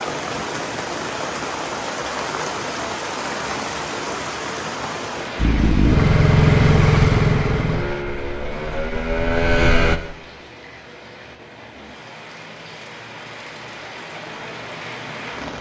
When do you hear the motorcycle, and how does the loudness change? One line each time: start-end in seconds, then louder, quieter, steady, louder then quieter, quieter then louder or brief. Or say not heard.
5.3-10.0 quieter then louder.